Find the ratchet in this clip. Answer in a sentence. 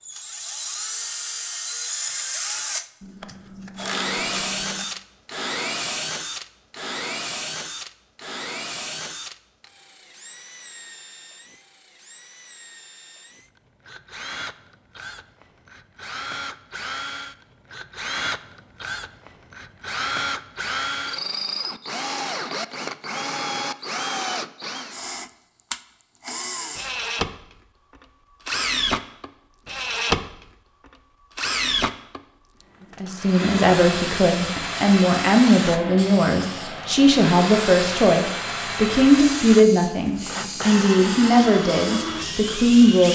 You can hear the ratchet from 3.0 to 4.8 s.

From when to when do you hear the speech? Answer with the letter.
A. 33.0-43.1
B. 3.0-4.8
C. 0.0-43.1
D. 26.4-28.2
A.